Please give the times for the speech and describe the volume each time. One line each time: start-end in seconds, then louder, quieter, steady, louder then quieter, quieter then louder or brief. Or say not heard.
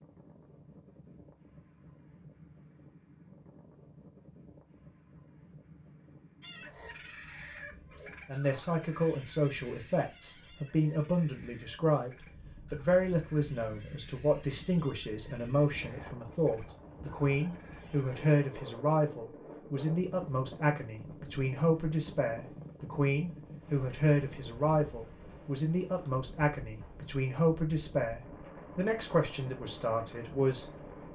8.2-31.1 steady.